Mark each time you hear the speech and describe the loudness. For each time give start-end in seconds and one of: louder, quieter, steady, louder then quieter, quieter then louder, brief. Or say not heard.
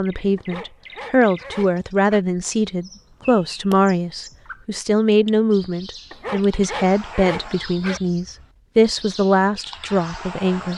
0.0-10.7 steady.